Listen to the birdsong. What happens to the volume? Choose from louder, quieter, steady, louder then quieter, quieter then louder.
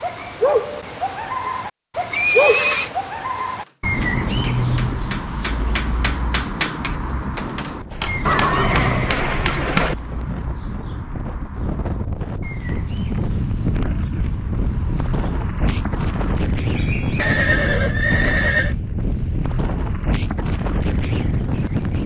quieter.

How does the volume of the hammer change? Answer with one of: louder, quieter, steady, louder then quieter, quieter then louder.
louder.